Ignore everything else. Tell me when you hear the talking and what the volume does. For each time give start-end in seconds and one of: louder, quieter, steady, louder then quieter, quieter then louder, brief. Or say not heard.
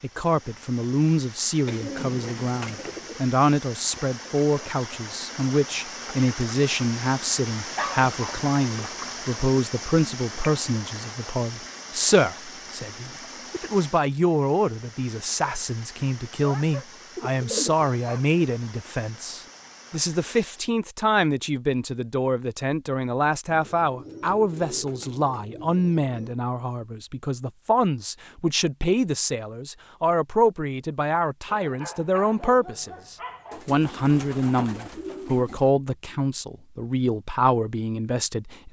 0.0-38.6 steady.